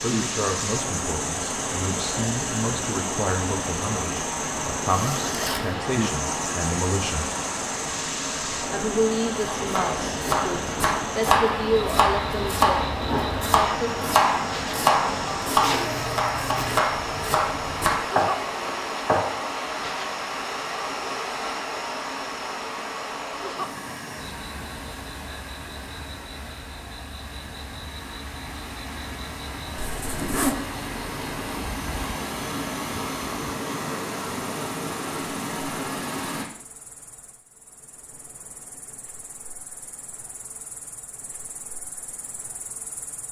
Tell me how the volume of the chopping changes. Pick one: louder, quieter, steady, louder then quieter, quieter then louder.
steady.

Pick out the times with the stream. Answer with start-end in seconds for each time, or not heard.
0.0-36.5.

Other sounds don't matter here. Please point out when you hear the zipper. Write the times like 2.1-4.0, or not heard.
4.8-5.8, 15.6-16.8, 29.8-30.6.